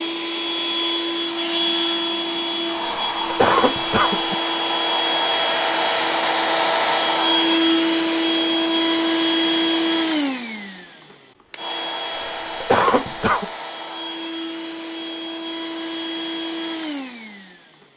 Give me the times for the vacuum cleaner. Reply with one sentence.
You can hear the vacuum cleaner from 0.0 to 17.9 s.